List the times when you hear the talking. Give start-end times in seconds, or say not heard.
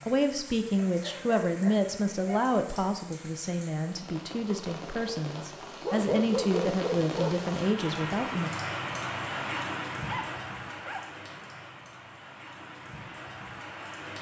0.1-8.5.